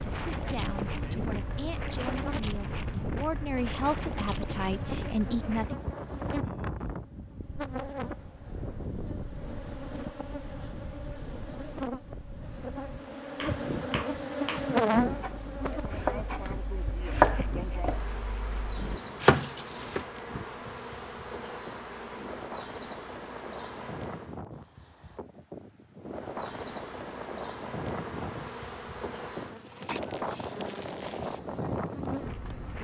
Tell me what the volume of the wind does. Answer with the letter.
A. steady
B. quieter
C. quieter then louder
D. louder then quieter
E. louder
C.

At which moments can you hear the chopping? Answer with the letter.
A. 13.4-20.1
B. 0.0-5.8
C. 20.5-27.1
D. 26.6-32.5
A.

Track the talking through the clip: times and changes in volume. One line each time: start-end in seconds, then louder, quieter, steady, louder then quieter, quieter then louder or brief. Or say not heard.
0.0-5.8 louder.